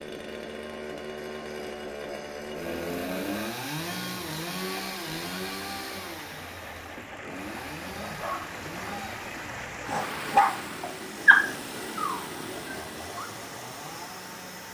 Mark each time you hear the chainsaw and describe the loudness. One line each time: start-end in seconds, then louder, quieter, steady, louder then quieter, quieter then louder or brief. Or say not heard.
0.0-14.6 quieter.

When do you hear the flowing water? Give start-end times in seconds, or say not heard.
3.8-14.6.